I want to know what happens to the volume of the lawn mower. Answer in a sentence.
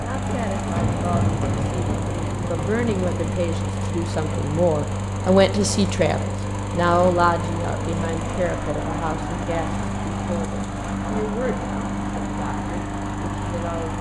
The volume of the lawn mower stays about the same.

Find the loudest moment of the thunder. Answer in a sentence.
The loudest moment of the thunder is at 1 second.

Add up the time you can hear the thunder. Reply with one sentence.
You can hear the thunder for 3 seconds altogether.